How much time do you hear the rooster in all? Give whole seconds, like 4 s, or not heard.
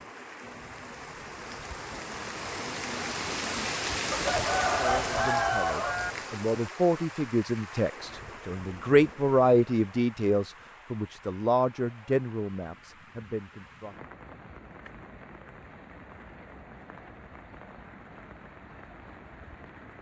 2 s.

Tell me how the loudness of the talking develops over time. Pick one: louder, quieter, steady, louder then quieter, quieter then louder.
louder then quieter.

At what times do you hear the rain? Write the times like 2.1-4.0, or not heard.
0.0-19.9.